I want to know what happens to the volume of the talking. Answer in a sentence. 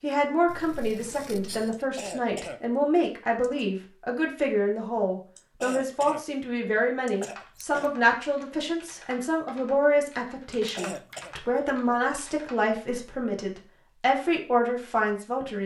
The loudness of the talking stays about the same.